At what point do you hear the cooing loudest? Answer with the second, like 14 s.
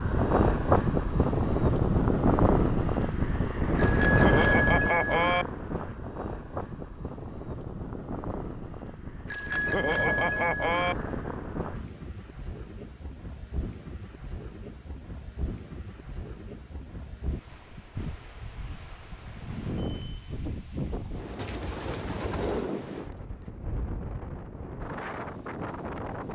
22 s.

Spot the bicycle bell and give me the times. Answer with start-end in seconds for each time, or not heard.
3.8-5.5, 9.2-10.9, 19.8-20.3.